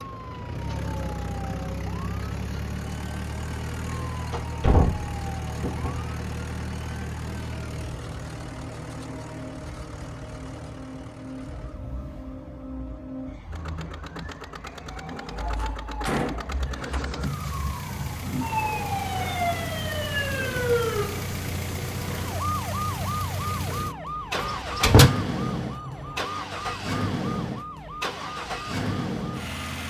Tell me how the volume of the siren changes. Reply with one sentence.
The volume of the siren goes up, then down.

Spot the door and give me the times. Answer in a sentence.
The door can be heard from 4.3 to 6.0 s, from 15.1 to 17.0 s and from 24.4 to 25.1 s.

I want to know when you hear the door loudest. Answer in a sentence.
The loudest moment of the door is at 25 seconds.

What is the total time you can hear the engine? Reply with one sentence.
The engine can be heard for 30 seconds in total.